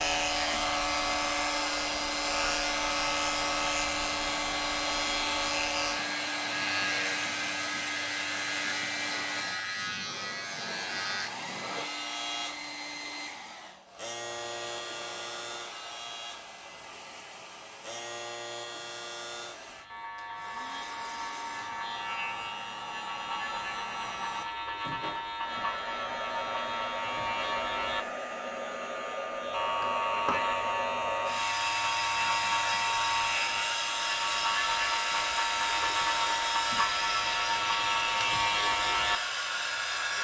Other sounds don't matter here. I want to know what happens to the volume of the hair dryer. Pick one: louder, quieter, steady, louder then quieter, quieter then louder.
quieter then louder.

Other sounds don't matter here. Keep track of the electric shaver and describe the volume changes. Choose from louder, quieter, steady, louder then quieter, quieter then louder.
quieter then louder.